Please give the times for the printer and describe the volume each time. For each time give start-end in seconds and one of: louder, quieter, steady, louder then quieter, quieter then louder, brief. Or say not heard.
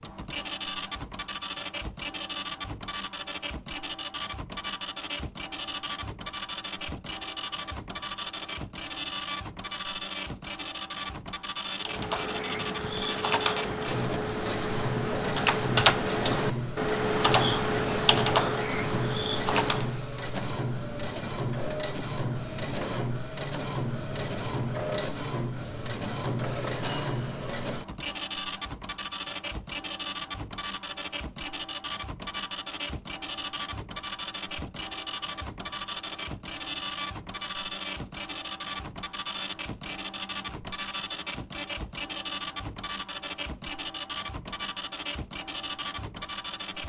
0.0-46.8 steady.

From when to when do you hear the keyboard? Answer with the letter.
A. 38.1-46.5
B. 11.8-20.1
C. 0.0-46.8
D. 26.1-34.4
B.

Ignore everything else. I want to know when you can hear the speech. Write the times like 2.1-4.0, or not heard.
not heard.